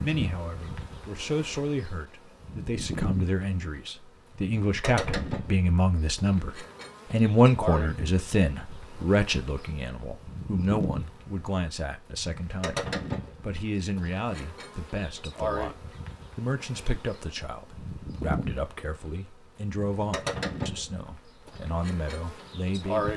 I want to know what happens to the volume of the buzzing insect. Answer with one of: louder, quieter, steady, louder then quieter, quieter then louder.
steady.